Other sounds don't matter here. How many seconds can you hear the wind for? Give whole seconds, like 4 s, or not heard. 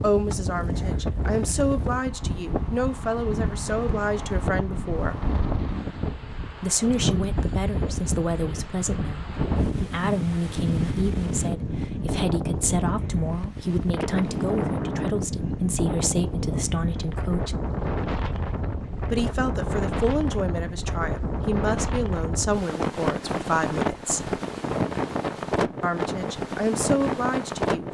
28 s.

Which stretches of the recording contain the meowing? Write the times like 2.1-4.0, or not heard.
not heard.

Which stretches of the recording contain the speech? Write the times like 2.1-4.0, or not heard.
0.0-5.2, 6.6-17.6, 19.1-24.4, 25.8-27.8.